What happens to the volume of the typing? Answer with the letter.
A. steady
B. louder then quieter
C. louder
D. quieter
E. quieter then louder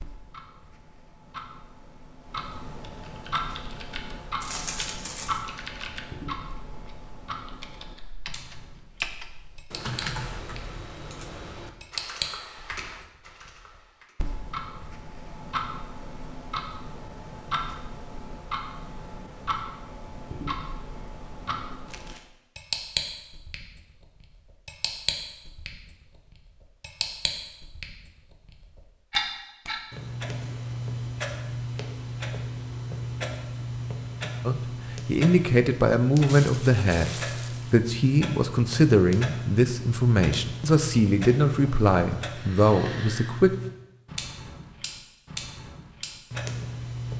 B.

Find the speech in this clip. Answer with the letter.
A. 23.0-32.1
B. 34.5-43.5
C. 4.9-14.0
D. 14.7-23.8
B.